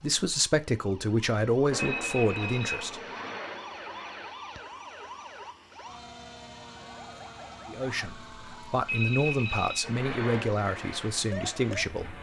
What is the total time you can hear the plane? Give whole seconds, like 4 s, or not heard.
5 s.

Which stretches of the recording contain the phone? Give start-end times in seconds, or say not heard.
1.8-3.3, 8.8-9.8.